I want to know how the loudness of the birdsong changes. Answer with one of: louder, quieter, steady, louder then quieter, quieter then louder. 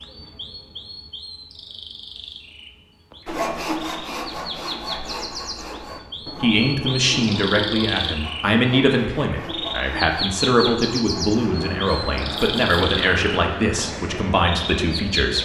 louder.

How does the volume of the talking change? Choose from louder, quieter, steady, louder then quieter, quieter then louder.
steady.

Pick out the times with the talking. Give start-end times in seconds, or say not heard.
6.2-15.4.